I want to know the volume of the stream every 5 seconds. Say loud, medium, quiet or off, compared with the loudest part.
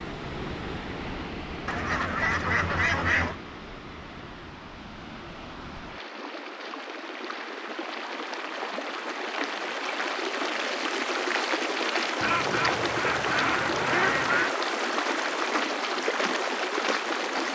medium, medium, loud, loud.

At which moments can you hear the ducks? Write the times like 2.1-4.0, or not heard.
1.6-3.4, 12.2-14.6.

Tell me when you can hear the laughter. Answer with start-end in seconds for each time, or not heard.
not heard.